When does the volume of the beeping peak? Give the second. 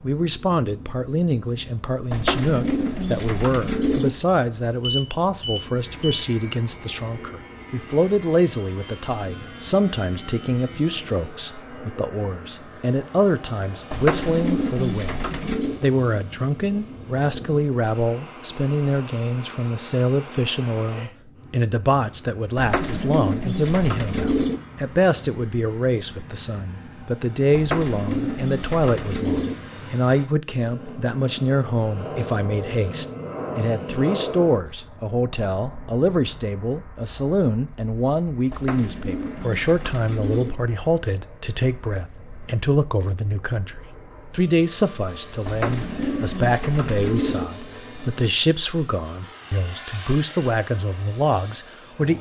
5 s.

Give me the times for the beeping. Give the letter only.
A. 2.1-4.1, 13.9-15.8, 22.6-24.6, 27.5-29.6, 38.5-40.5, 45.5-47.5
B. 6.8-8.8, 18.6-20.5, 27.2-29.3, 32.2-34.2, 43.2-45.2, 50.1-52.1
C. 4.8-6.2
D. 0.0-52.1
C.